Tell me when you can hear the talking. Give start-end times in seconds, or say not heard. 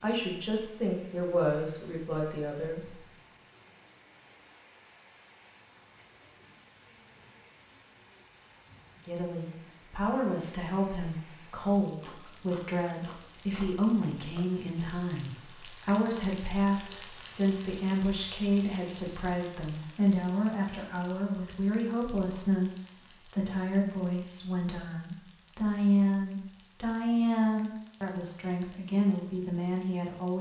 0.0-3.0, 9.1-30.3.